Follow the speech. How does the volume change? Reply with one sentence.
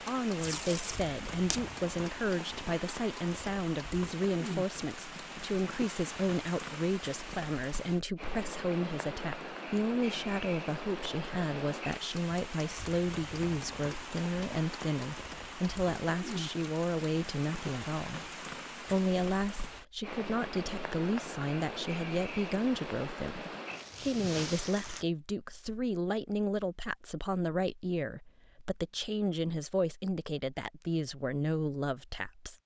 The loudness of the speech stays about the same.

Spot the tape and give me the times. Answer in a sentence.
The tape can be heard from 0.3 to 1.6 s.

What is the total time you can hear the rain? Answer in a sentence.
You can hear the rain for 25 seconds altogether.